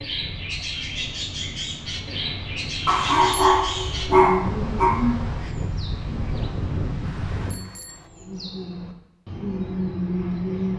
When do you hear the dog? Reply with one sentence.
You can hear the dog from 2.9 to 5.0 s.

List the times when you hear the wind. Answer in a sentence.
You can hear the wind from 0.0 to 7.5 s.